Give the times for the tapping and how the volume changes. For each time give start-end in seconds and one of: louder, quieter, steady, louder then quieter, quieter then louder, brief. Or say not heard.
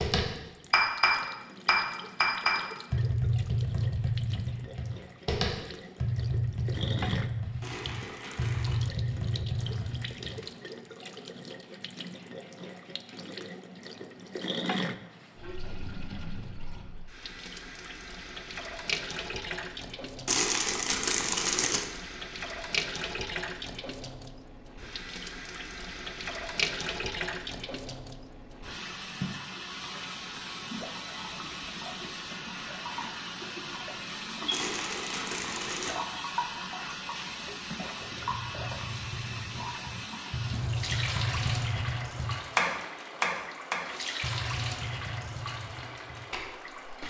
0.0-10.3 quieter
38.0-46.9 louder then quieter.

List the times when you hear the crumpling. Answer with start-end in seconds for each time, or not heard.
7.6-8.8, 20.2-21.9, 34.5-36.0.